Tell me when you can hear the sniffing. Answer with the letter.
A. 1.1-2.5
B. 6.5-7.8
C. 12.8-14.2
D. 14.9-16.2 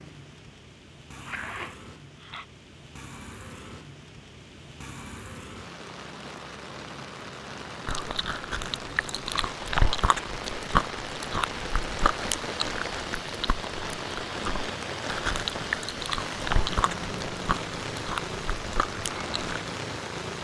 A.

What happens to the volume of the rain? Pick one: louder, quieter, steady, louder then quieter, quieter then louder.
louder.